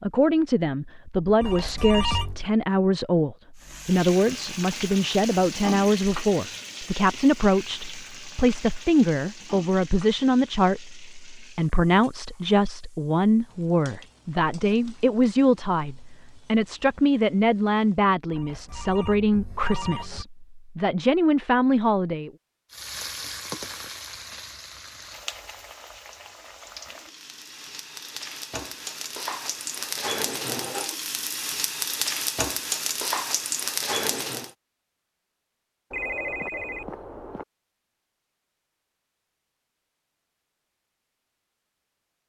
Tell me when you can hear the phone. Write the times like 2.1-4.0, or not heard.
1.4-2.5, 18.3-20.2, 35.9-37.5.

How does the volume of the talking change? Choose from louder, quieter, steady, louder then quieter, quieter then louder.
steady.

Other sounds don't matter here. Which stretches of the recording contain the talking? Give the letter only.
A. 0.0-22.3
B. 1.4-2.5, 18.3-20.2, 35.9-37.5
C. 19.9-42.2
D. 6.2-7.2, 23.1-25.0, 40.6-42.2
A.